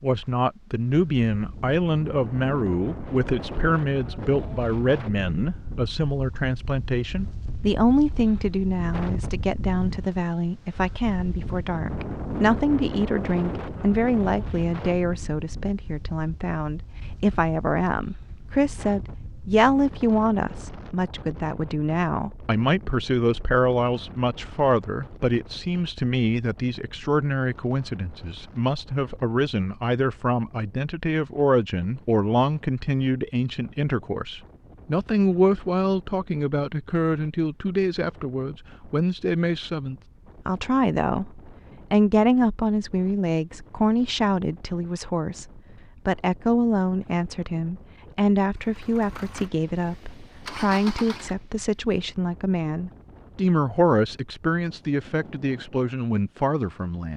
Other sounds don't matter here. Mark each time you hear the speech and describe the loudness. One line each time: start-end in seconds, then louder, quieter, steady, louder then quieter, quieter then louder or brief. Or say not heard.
0.0-57.1 steady.